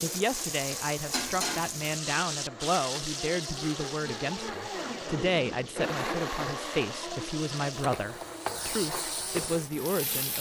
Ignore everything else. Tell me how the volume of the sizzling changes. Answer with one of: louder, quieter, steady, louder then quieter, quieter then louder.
quieter then louder.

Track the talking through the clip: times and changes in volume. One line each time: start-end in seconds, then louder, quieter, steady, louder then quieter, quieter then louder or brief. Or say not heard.
0.0-10.3 steady.